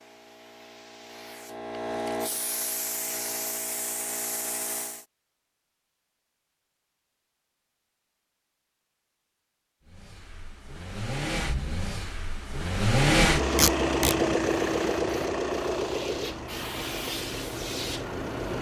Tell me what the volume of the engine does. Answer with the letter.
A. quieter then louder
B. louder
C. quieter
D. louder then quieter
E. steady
D.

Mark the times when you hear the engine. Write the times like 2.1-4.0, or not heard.
9.8-18.5.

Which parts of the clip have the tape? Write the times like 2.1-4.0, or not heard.
13.6-14.2.